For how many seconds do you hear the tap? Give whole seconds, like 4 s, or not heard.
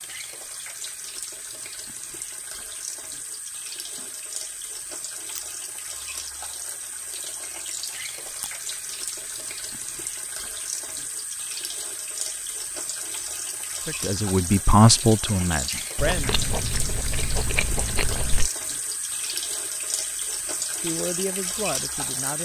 22 s.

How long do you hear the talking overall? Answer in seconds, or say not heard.
4 s.